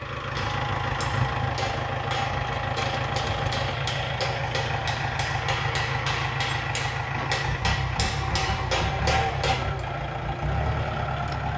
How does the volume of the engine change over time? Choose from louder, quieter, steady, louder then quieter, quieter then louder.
steady.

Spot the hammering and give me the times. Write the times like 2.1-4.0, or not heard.
0.2-9.8.